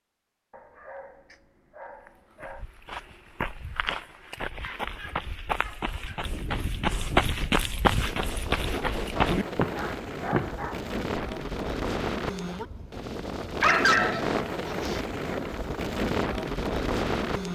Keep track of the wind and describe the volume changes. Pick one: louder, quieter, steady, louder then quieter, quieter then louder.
louder.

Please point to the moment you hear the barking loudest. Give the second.
14 s.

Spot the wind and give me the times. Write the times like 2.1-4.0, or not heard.
6.2-17.4.